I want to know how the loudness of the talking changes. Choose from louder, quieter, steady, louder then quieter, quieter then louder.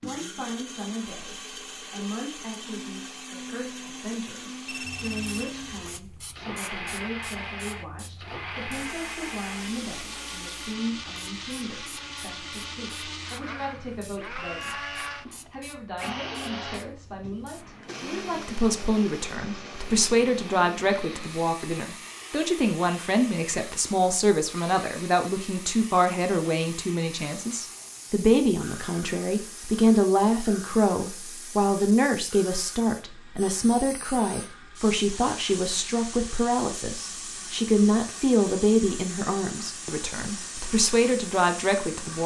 louder.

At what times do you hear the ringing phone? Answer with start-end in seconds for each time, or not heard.
4.7-5.5.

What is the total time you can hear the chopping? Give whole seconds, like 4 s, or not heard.
not heard.